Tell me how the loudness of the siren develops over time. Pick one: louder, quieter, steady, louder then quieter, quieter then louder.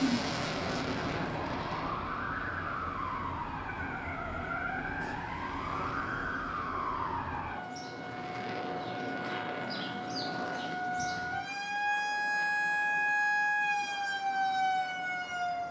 louder.